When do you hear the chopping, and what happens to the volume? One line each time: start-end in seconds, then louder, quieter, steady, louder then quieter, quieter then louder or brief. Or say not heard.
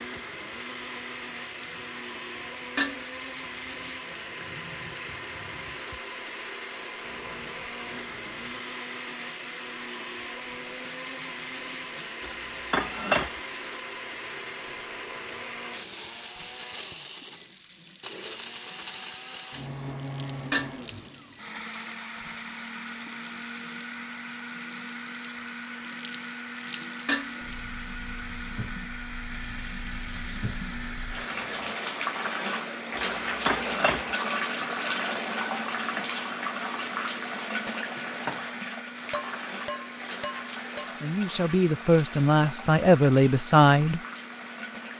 not heard.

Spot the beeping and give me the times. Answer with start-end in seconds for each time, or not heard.
7.0-8.7, 19.5-21.1, 30.6-31.8.